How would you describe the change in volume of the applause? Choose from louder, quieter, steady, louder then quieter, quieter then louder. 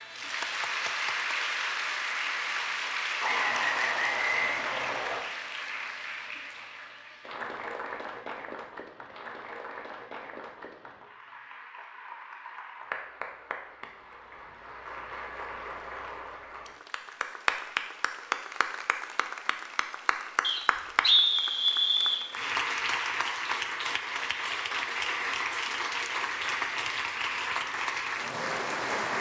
quieter then louder.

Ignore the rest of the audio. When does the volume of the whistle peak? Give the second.
21 s.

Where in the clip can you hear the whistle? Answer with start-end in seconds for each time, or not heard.
3.2-5.2, 20.4-22.2.